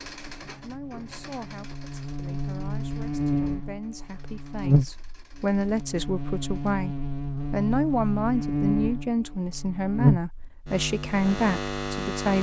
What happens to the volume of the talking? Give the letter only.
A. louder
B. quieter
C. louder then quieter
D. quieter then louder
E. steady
A.